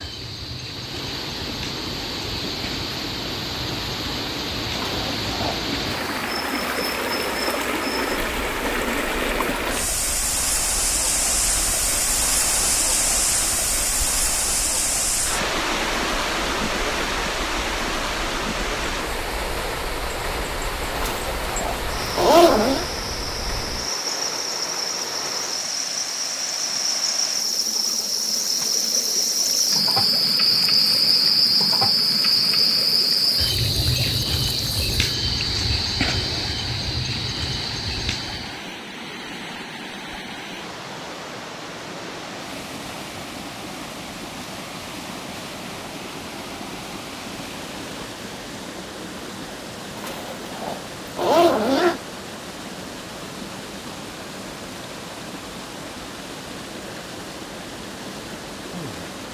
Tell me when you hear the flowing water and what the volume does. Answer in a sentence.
You can hear the flowing water from 0.0 to 59.2 s, getting quieter.